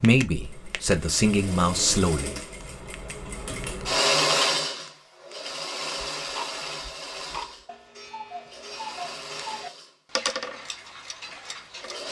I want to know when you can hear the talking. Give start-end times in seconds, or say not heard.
0.0-2.4.